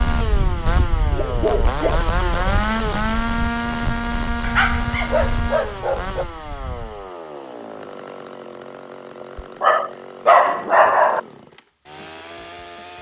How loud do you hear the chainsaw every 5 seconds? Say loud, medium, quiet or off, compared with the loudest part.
loud, medium, quiet.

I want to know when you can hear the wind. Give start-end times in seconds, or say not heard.
0.0-7.0.